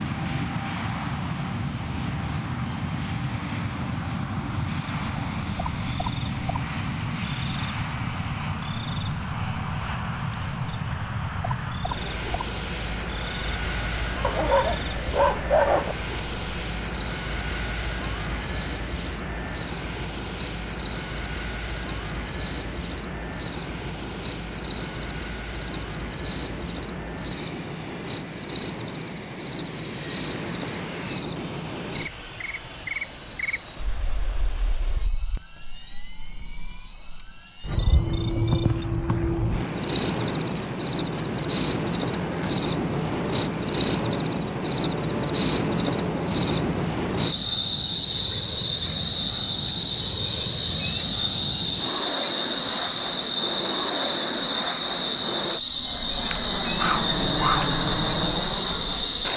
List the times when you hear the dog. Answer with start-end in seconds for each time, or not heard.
14.2-15.9, 56.3-57.8.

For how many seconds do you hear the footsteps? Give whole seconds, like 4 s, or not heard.
not heard.